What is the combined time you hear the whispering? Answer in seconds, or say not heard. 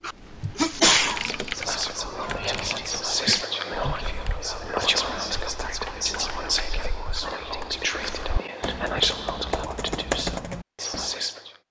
10 s.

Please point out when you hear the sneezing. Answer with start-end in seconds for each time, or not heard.
0.6-1.8.